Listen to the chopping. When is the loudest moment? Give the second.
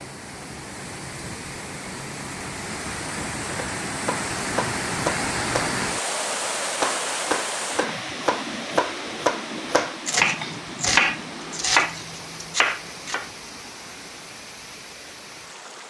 11 s.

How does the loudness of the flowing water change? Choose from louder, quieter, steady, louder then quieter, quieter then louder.
louder then quieter.